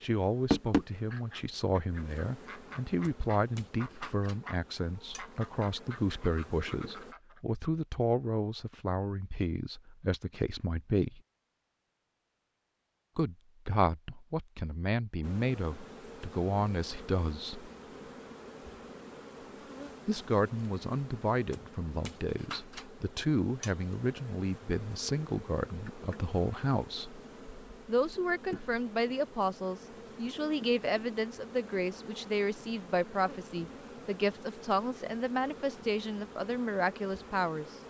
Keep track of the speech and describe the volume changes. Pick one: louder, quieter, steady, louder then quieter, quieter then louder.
steady.